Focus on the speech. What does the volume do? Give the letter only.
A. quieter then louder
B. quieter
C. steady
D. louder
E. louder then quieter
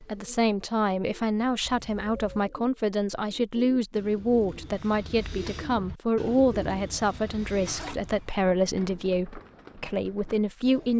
C.